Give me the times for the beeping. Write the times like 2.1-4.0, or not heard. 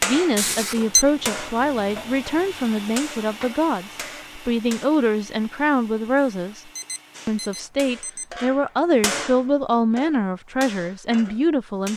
0.3-1.1, 6.4-8.2.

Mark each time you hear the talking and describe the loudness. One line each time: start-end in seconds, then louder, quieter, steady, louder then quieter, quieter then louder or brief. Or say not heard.
0.0-11.9 steady.